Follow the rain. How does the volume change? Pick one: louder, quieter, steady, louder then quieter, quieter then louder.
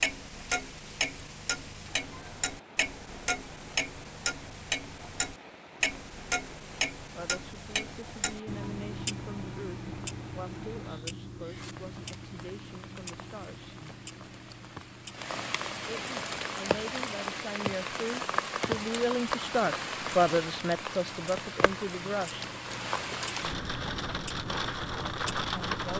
louder.